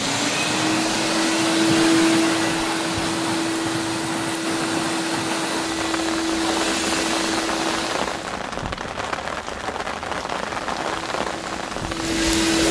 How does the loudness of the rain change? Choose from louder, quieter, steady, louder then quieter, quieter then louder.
steady.